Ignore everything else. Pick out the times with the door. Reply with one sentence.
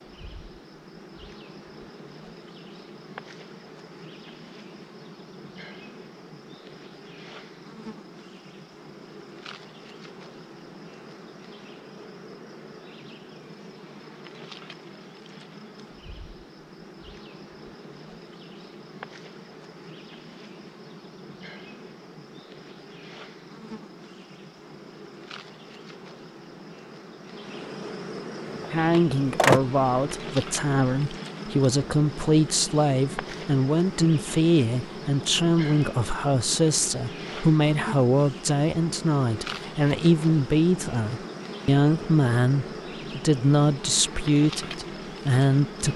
You can hear the door from 28.5 to 29.6 s.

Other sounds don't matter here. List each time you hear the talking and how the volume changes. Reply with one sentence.
You can hear the talking from 28.7 to 45.9 s, at a steady volume.